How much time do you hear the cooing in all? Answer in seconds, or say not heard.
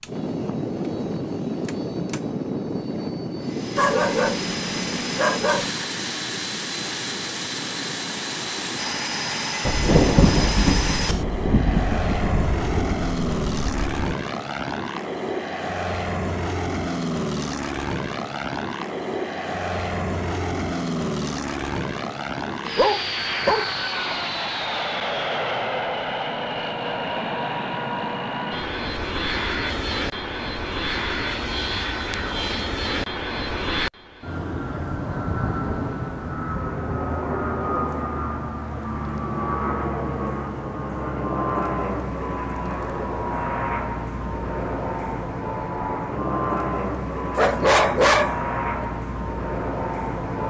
not heard.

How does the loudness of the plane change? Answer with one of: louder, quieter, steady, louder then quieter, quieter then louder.
steady.